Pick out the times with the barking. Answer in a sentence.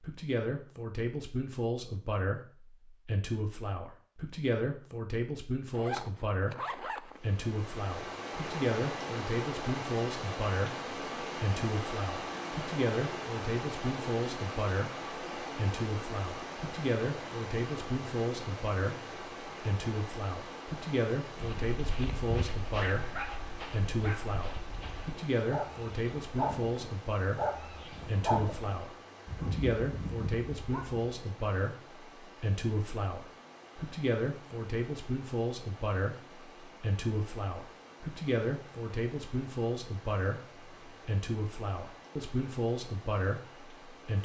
You can hear the barking from 21.4 to 31.1 s.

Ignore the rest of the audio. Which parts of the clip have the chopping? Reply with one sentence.
The chopping can't be heard in this clip.